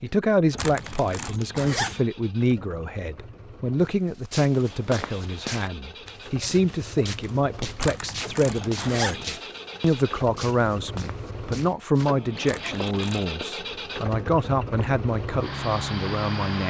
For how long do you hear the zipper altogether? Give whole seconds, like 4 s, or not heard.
4 s.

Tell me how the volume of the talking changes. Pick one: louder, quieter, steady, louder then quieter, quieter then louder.
steady.